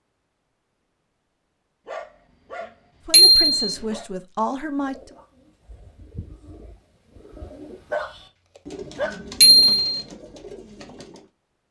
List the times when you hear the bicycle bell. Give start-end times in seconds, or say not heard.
3.1-3.7, 9.4-9.9.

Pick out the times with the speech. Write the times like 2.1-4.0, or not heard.
3.0-5.2.